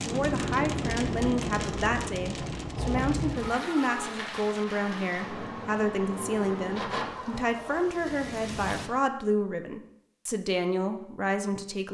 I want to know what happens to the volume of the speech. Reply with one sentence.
The volume of the speech stays about the same.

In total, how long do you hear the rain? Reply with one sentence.
The rain can be heard for 9 seconds in total.